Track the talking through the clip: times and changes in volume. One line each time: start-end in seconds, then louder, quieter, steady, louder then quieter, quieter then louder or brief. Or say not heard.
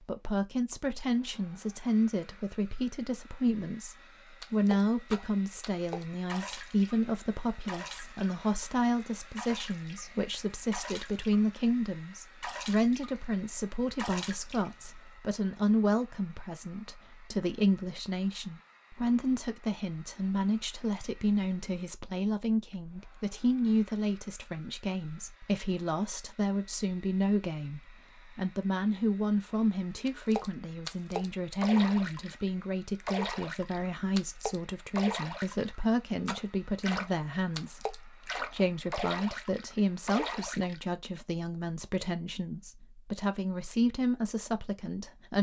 0.0-45.3 steady.